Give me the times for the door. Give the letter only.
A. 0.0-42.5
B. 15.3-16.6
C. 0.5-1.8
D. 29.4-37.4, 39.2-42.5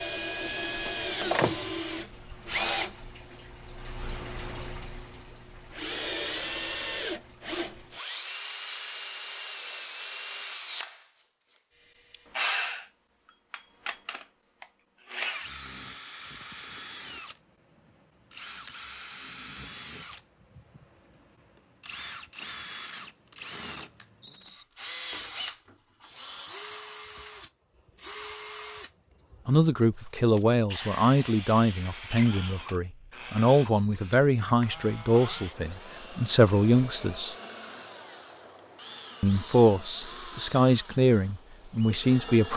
C.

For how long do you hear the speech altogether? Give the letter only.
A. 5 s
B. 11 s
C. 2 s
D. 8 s
B.